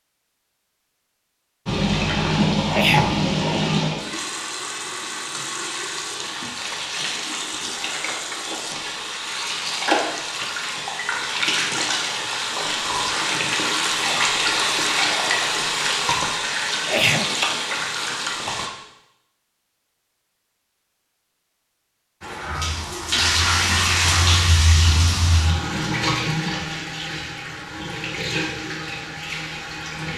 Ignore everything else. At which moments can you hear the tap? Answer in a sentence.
The tap can be heard from 1.6 to 18.7 s and from 22.2 to 30.1 s.